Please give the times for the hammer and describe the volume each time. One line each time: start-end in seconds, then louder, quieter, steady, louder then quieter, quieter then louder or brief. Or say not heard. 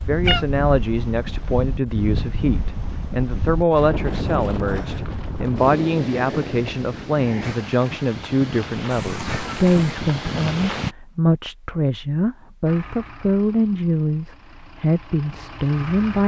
not heard.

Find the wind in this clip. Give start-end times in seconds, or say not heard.
0.0-10.9.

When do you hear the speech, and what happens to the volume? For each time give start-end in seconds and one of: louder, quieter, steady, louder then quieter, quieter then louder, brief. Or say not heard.
0.1-16.2 steady.